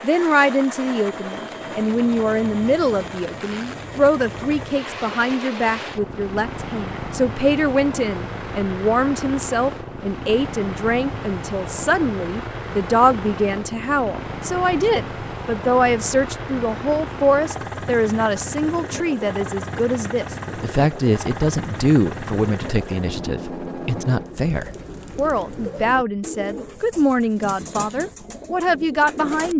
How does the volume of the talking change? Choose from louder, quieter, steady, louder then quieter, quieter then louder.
steady.